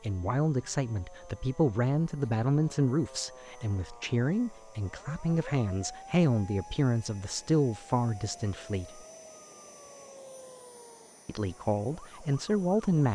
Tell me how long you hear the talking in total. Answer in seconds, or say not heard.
11 s.